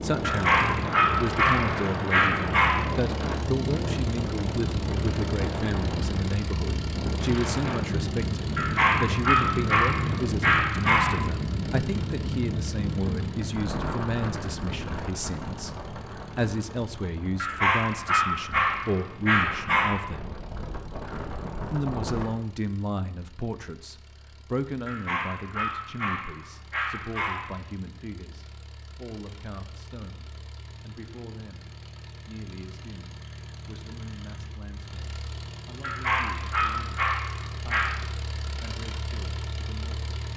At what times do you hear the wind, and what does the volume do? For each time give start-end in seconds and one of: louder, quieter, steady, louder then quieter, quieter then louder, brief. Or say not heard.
0.0-22.3 quieter.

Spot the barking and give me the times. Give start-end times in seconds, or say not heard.
0.2-2.9, 8.6-11.2, 17.4-19.9, 24.9-27.6, 35.8-38.0.